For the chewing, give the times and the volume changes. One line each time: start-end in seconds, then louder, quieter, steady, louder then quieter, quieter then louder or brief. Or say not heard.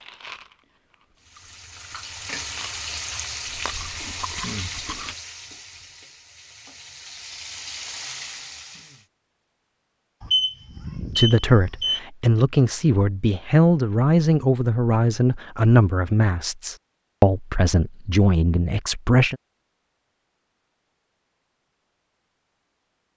0.0-5.2 louder.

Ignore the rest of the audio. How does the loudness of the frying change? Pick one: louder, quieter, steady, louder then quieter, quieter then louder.
quieter then louder.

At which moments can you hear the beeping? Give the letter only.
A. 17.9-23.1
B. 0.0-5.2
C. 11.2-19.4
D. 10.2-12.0
D.